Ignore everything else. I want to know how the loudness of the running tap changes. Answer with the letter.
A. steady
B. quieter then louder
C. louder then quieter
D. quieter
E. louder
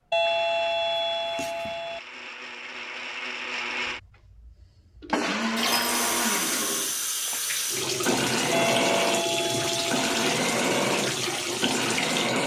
A.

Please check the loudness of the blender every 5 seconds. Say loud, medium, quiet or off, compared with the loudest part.
medium, loud, loud.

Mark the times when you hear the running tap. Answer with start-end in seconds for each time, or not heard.
5.5-12.4.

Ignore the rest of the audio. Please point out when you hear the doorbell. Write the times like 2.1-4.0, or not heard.
0.1-2.0, 5.7-6.5, 8.5-10.3.